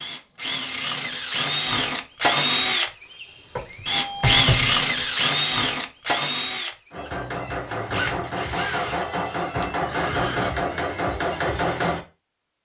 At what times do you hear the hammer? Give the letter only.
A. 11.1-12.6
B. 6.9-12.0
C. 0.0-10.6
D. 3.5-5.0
B.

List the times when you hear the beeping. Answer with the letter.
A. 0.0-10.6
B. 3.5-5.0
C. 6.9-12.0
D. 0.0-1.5
B.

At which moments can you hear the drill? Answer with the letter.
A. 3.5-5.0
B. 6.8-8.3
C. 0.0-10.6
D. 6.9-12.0
C.